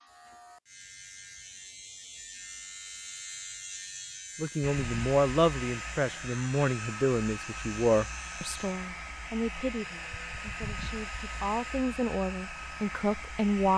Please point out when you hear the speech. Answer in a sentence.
The speech can be heard from 4.3 to 13.7 s.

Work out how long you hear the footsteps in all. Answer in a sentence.
The footsteps can't be heard in this clip.